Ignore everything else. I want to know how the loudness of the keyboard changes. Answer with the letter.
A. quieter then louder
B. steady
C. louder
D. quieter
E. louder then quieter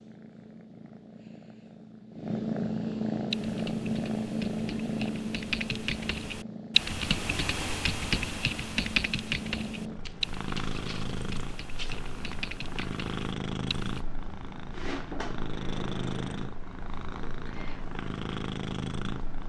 E.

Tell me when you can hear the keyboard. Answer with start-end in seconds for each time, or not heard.
3.3-14.0.